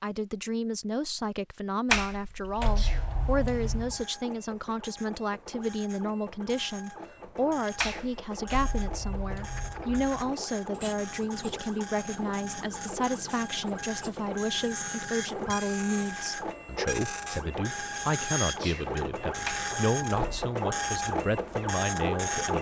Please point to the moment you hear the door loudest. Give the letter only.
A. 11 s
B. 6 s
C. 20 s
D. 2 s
D.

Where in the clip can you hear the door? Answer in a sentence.
The door can be heard from 1.9 to 4.0 s, from 7.8 to 10.3 s and from 19.4 to 20.4 s.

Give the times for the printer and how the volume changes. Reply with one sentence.
The printer can be heard from 3.2 to 22.5 s, getting louder.